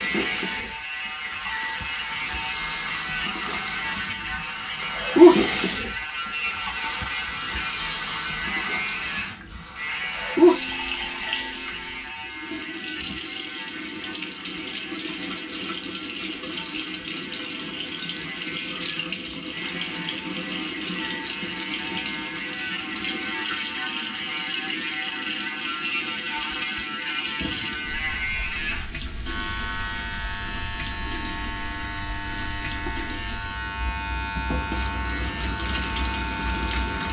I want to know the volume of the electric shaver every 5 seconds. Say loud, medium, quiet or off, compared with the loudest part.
loud, loud, medium, medium, loud, loud, loud, loud.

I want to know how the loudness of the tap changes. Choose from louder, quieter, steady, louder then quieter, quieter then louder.
quieter.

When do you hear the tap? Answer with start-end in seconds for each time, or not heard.
0.0-37.0.